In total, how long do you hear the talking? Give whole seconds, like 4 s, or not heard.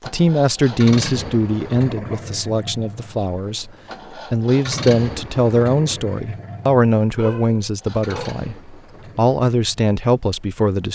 10 s.